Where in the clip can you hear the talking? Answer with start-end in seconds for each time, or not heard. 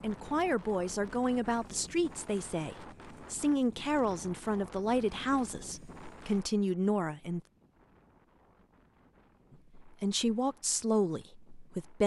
0.0-7.4, 9.8-12.0.